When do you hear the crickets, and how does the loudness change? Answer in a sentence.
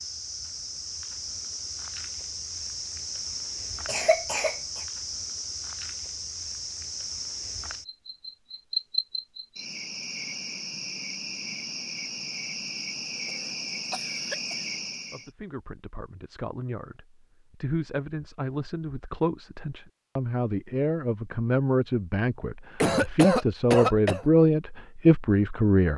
You can hear the crickets from 0.0 to 15.3 s, at a steady volume.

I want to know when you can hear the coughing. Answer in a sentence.
You can hear the coughing from 3.9 to 4.5 s, from 13.2 to 14.6 s and from 22.8 to 24.2 s.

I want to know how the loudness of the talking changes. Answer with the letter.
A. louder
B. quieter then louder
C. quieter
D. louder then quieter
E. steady
A.